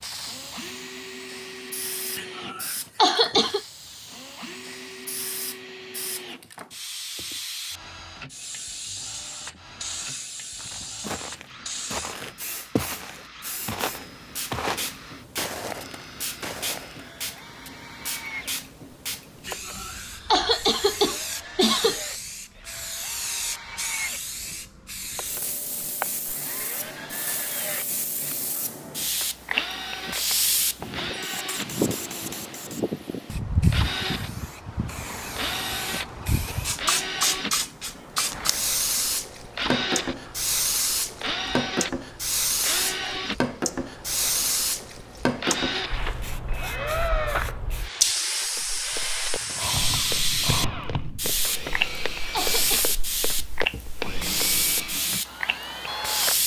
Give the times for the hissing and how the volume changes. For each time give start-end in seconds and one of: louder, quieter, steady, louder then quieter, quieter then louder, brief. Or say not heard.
0.0-56.4 louder.